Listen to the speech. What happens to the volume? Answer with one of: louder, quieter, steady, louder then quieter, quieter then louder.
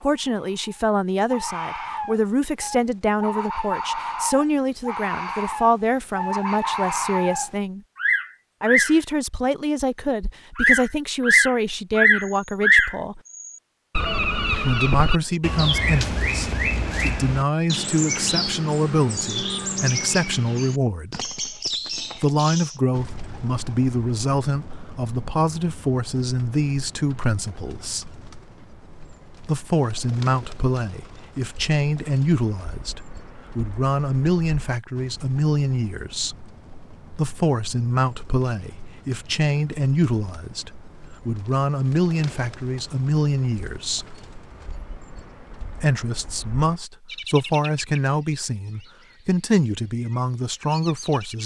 steady.